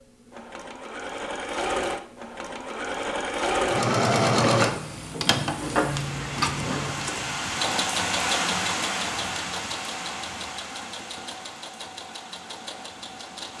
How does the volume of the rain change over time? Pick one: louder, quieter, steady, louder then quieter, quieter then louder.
louder then quieter.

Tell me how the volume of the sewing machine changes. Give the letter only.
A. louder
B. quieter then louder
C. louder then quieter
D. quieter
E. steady
C.